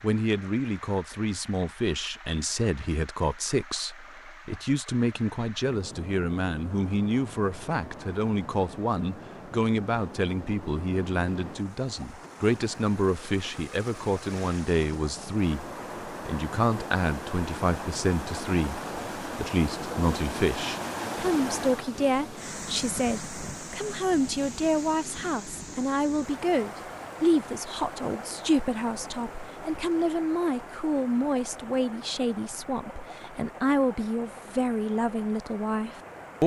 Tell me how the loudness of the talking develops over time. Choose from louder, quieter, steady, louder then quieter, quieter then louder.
steady.